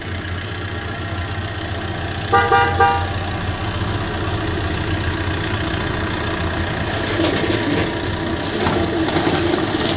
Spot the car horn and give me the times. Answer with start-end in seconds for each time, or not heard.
2.3-3.0.